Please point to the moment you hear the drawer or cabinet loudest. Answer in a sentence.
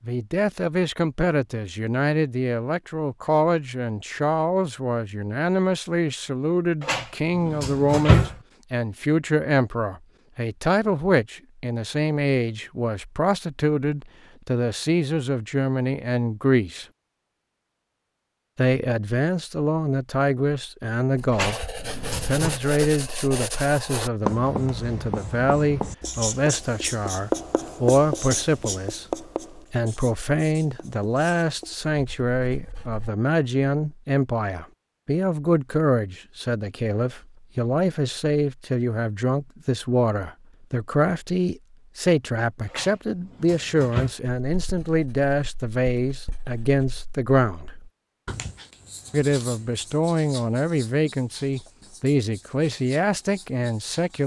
The loudest moment of the drawer or cabinet is at 8 seconds.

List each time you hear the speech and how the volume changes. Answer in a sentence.
You can hear the speech from 0.0 to 16.9 s, at a steady volume; from 18.6 to 47.9 s, at a steady volume; and from 49.1 to 54.2 s, at a steady volume.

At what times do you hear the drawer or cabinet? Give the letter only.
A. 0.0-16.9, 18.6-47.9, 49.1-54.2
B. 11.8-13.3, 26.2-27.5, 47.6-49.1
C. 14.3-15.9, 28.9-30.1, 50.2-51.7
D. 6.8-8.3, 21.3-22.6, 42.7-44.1
D.